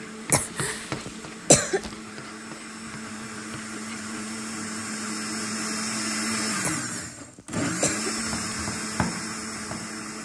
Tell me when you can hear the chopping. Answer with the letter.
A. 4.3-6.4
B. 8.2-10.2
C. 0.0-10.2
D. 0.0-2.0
B.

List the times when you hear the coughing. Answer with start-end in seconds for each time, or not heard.
0.3-1.9, 6.6-8.6.